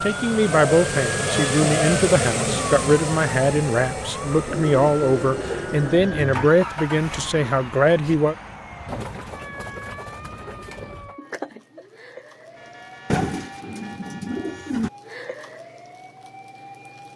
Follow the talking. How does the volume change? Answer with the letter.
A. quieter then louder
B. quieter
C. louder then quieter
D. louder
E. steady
E.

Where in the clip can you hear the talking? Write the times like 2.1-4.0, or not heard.
0.0-8.3.